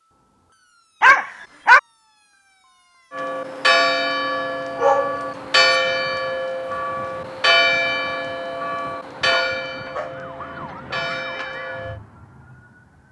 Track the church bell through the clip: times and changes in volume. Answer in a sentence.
The church bell can be heard from 3.1 to 12.0 s, getting quieter.